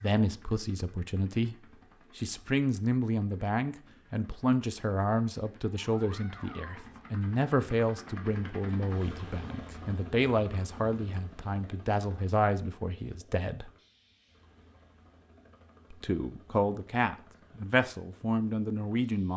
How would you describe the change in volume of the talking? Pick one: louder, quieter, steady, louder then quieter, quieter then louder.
steady.